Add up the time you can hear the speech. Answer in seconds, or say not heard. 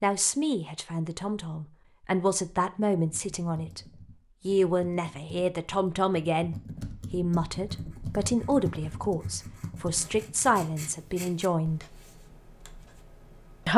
11 s.